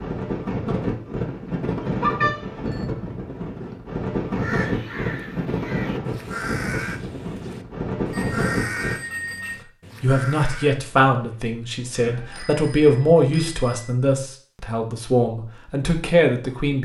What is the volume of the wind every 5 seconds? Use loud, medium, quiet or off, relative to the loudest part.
loud, loud, off, off.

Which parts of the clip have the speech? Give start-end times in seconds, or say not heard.
10.0-16.8.